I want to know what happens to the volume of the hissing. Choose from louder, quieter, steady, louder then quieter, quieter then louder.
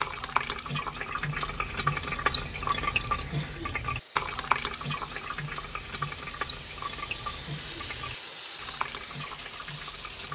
louder.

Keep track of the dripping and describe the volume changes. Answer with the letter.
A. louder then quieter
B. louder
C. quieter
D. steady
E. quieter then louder
C.